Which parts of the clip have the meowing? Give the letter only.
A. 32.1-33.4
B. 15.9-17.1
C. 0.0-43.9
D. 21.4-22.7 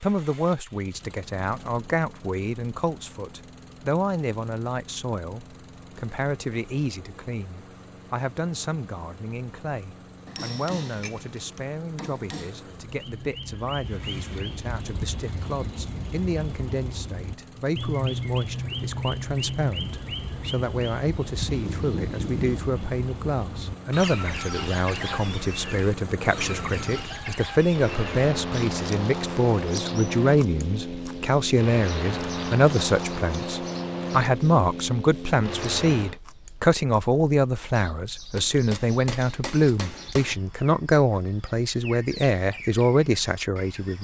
D.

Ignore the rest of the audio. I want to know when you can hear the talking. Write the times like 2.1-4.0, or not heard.
0.0-43.9.